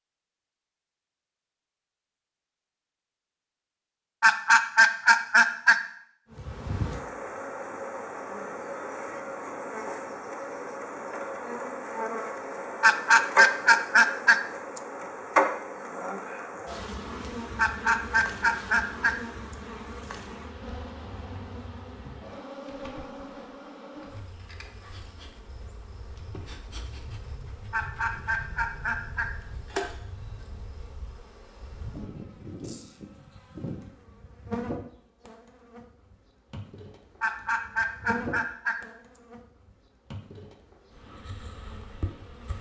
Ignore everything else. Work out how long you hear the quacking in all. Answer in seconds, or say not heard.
9 s.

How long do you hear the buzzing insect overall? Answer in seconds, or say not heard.
36 s.